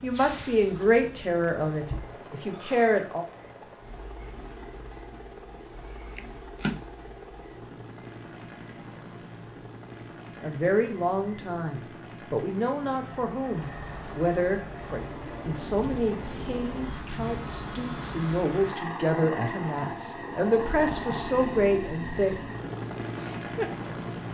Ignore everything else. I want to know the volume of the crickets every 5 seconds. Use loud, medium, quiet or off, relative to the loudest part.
loud, loud, loud, quiet, medium.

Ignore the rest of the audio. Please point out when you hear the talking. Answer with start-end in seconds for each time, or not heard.
0.0-3.2, 10.4-22.4.